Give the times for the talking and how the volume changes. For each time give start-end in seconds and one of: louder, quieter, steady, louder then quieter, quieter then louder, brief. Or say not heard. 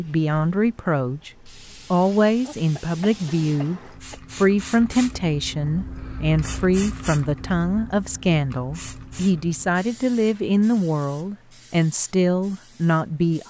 0.0-13.4 steady.